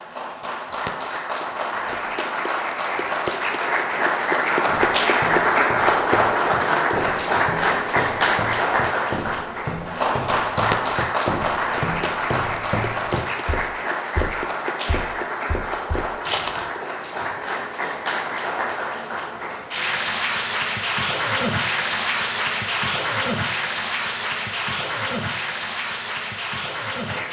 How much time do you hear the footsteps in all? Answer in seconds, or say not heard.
12 s.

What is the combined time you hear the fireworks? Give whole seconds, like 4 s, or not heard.
not heard.